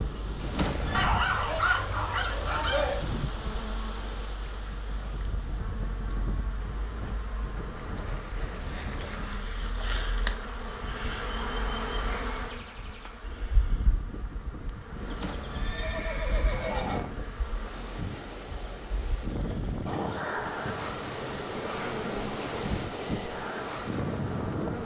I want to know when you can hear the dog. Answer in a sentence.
The dog can be heard from 0.9 to 3.0 s.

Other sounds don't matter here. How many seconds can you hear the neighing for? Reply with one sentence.
You can hear the neighing for 3 seconds altogether.